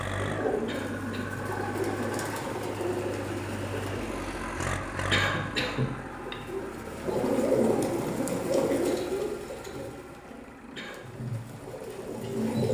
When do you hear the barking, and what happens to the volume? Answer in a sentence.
The barking can't be heard in this clip.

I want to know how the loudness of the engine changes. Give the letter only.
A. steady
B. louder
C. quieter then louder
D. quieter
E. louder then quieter
D.